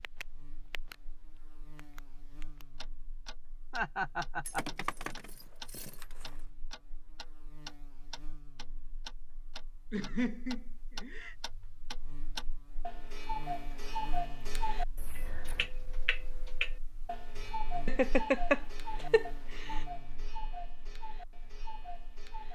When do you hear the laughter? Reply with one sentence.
You can hear the laughter from 3.7 to 4.7 s, from 9.9 to 11.3 s and from 17.9 to 19.2 s.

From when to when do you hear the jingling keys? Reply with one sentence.
The jingling keys can be heard from 4.5 to 6.4 s and from 14.9 to 15.7 s.